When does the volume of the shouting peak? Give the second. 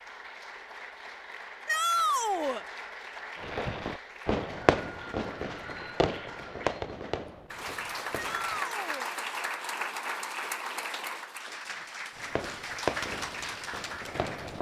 2 s.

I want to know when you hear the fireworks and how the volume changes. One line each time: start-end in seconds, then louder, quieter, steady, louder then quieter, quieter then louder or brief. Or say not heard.
3.4-8.7 quieter
12.2-14.5 brief.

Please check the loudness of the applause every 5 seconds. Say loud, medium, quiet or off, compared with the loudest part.
medium, loud, loud.